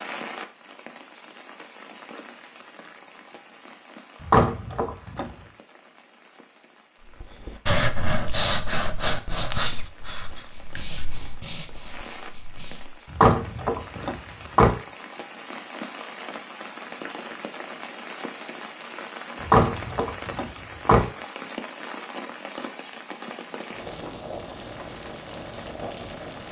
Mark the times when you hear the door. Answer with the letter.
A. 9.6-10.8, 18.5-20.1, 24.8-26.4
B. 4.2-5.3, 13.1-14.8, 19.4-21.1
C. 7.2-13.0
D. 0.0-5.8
B.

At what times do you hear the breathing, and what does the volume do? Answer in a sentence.
The breathing can be heard from 7.2 to 13.0 s, getting quieter.